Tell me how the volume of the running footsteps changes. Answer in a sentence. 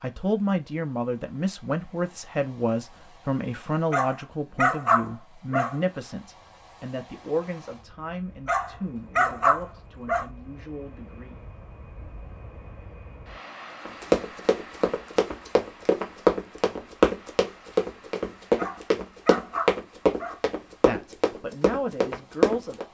The loudness of the running footsteps goes up, then down.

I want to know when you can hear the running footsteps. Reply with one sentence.
You can hear the running footsteps from 13.8 to 22.8 s.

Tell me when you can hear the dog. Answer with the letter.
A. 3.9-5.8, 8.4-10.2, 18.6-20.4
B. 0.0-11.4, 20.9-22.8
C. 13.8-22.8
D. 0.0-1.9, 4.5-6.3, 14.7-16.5
A.